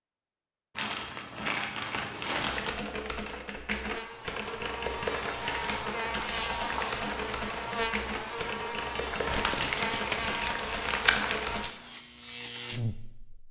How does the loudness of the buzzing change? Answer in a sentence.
The loudness of the buzzing stays about the same.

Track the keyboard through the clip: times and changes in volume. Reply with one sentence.
You can hear the keyboard from 2.4 to 11.7 s, at a steady volume.